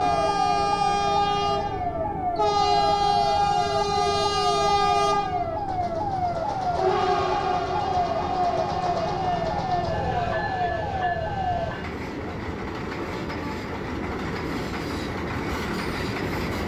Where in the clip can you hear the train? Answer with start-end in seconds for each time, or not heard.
0.0-16.6.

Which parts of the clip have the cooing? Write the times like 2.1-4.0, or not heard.
not heard.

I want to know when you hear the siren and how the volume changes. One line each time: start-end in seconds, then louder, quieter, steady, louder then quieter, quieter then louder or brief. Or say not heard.
0.0-11.8 steady.